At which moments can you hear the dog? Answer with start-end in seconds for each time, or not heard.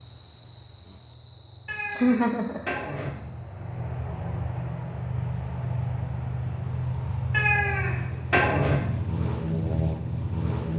not heard.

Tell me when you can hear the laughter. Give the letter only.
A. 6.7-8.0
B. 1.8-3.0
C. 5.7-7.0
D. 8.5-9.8
B.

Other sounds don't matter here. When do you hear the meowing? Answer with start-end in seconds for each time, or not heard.
1.6-3.1, 7.3-8.8.